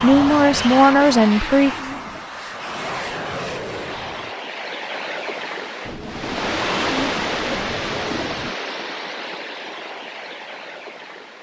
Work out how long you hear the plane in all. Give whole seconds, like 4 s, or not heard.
4 s.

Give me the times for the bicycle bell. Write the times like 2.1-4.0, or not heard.
not heard.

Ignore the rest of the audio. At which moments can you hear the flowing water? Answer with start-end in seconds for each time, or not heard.
3.6-11.3.